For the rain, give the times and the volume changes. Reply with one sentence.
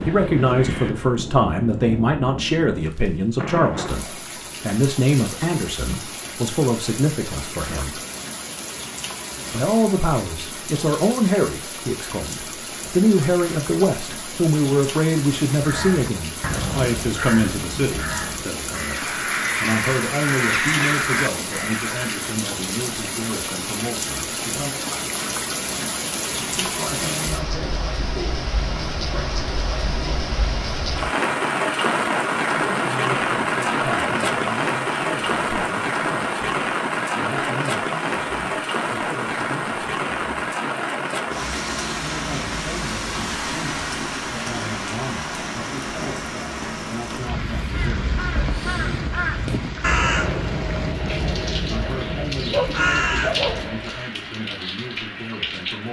The rain can be heard from 0.0 to 55.8 s, getting louder then quieter.